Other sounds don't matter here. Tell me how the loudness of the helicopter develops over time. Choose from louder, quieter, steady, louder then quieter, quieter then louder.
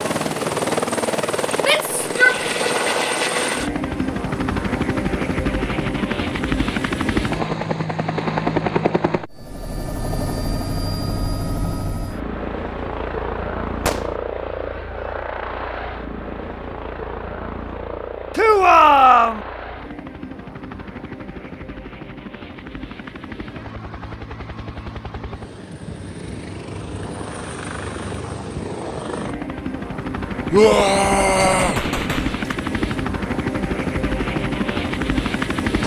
quieter then louder.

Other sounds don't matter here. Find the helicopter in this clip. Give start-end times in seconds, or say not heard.
0.0-35.8.